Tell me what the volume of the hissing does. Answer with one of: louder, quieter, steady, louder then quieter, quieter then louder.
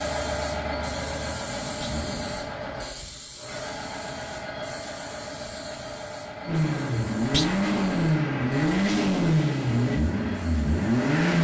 quieter.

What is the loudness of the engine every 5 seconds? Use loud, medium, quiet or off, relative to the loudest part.
quiet, loud, loud.